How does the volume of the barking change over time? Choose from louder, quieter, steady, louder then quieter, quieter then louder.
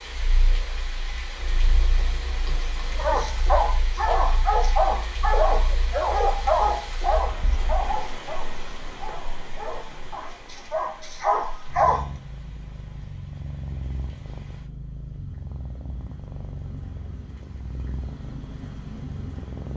quieter then louder.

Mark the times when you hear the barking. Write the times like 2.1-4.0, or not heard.
3.0-12.1.